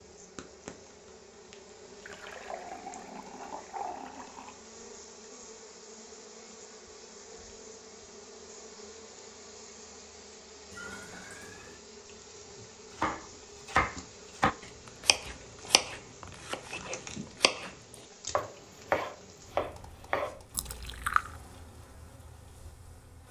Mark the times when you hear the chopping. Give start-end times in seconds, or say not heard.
12.9-20.4.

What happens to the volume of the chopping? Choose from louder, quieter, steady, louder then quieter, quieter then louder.
quieter then louder.